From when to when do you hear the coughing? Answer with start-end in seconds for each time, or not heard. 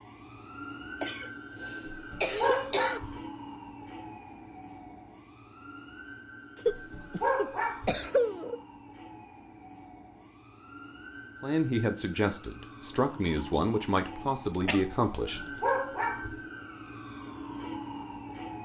1.0-3.0, 6.5-8.6, 14.4-15.0.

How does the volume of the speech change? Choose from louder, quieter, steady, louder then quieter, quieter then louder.
steady.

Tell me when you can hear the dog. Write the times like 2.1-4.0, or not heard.
1.9-3.2, 6.7-8.0, 15.1-16.4.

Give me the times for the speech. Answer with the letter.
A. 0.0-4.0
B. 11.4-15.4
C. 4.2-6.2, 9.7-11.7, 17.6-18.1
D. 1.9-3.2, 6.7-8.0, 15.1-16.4
B.